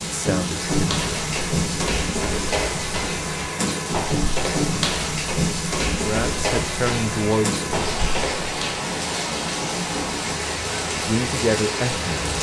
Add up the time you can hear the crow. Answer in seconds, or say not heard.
not heard.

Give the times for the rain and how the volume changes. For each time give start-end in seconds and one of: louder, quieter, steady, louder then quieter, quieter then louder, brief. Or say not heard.
0.0-12.3 steady.